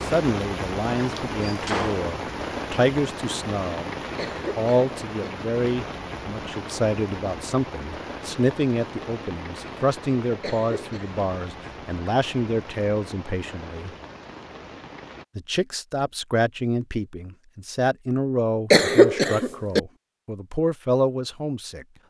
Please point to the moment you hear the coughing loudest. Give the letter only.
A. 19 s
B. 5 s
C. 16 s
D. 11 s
A.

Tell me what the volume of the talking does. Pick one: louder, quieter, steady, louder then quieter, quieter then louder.
steady.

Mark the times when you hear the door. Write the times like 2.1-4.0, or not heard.
1.4-2.1.